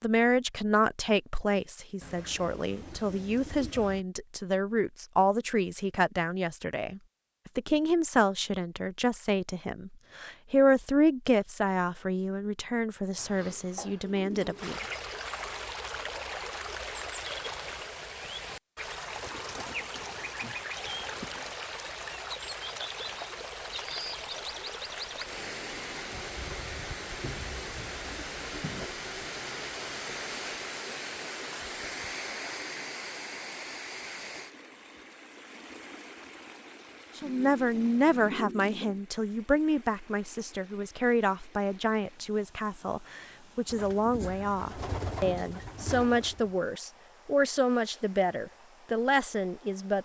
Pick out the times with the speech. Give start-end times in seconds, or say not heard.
0.0-14.8, 37.1-50.0.